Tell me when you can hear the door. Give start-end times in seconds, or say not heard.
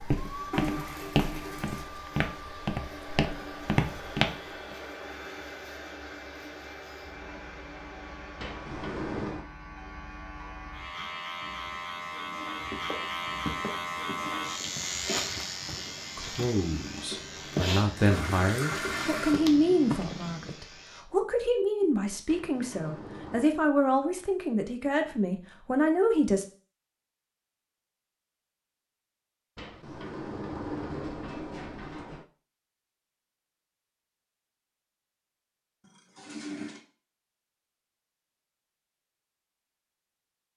8.3-9.4, 22.2-23.5, 29.6-32.2.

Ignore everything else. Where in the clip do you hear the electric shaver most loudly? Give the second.
15 s.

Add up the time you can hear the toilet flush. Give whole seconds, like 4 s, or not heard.
4 s.